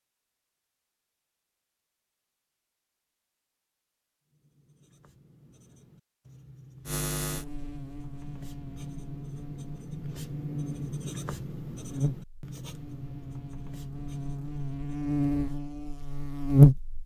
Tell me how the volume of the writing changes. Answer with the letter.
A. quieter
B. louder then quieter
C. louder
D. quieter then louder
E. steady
B.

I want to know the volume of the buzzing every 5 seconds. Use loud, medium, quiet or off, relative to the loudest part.
off, quiet, quiet, loud.